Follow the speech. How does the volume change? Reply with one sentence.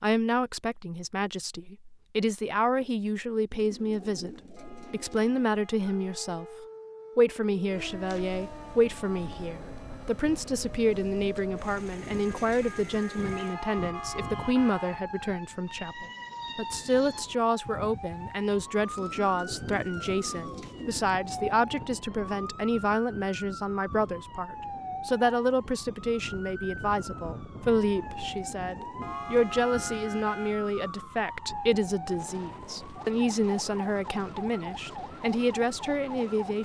The loudness of the speech stays about the same.